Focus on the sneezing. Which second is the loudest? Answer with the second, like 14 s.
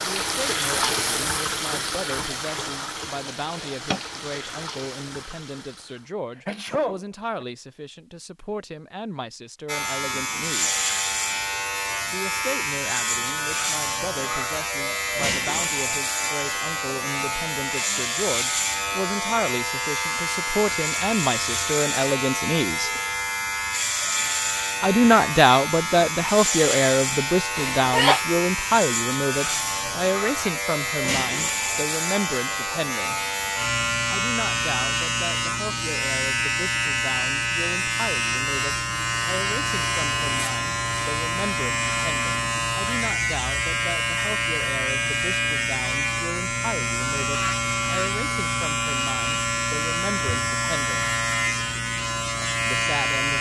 28 s.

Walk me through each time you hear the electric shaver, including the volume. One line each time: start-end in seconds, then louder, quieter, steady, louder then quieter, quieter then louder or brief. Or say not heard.
9.7-53.3 steady.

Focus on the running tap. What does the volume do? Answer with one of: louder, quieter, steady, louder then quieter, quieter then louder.
quieter.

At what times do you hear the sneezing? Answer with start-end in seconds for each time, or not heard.
6.3-7.5, 27.6-28.2.